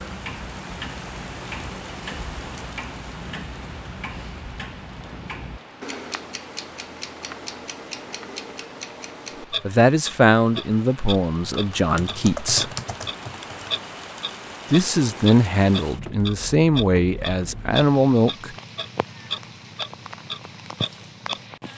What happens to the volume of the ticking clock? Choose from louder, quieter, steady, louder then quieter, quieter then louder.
louder.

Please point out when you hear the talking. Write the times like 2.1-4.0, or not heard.
9.7-12.7, 14.7-18.5.